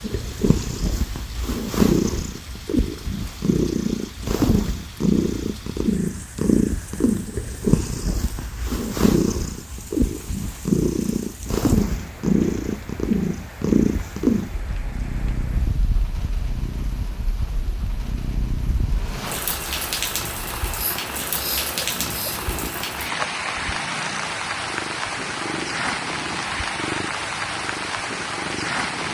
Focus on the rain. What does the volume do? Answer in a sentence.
The volume of the rain goes up.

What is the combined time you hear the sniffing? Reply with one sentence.
You can hear the sniffing for 2 seconds altogether.